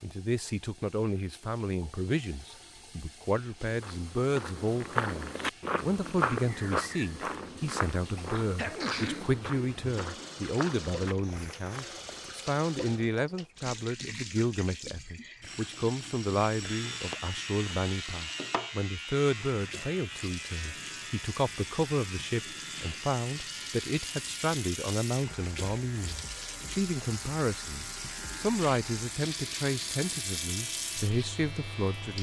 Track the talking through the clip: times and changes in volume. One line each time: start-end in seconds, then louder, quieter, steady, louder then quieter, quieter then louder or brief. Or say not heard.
0.0-32.1 steady.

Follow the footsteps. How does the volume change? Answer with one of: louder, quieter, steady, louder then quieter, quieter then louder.
quieter.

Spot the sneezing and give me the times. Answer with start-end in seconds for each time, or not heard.
8.6-9.6.